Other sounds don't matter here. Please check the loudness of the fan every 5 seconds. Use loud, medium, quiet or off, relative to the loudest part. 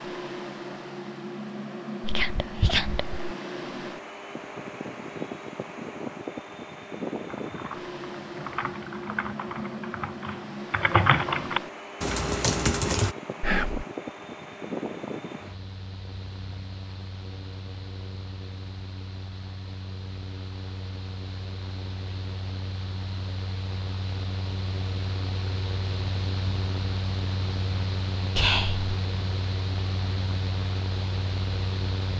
loud, loud, loud, medium, medium, loud, loud.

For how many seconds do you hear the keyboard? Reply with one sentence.
You can hear the keyboard for 6 seconds altogether.